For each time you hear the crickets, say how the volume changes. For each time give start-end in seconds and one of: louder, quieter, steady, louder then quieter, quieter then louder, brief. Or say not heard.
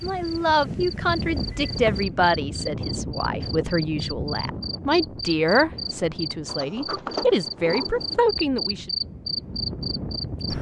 0.1-10.5 louder.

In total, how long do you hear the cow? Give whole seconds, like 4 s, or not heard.
not heard.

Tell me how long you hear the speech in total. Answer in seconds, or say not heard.
9 s.